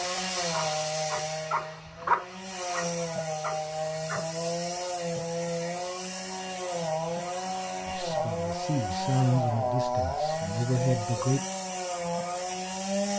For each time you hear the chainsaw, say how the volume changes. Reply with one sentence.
The chainsaw can be heard from 0.0 to 13.1 s, at a steady volume.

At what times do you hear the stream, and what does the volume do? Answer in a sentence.
You can't hear the stream here.